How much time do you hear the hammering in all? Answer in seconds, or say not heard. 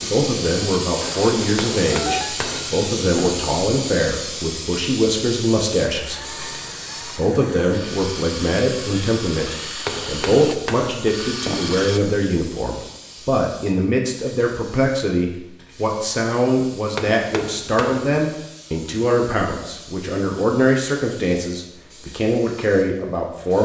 5 s.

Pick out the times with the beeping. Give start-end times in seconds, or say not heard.
1.0-2.4.